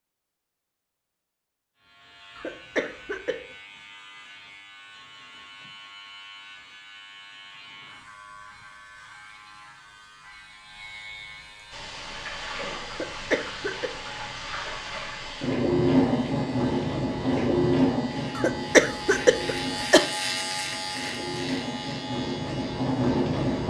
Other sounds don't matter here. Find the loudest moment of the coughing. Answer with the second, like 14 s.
19 s.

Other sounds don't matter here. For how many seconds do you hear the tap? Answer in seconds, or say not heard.
12 s.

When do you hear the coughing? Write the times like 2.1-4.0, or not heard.
2.4-3.4, 12.9-13.9, 18.4-20.1.